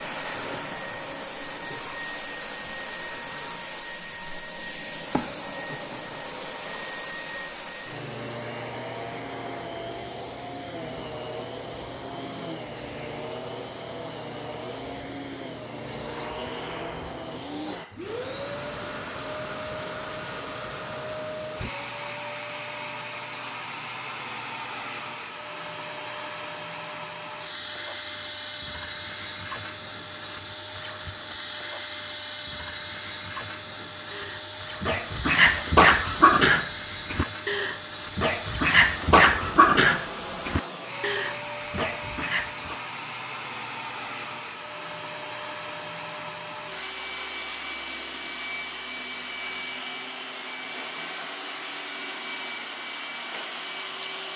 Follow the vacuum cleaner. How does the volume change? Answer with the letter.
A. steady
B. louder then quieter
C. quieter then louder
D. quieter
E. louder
A.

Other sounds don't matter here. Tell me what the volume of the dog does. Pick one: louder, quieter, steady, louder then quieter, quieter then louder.
quieter.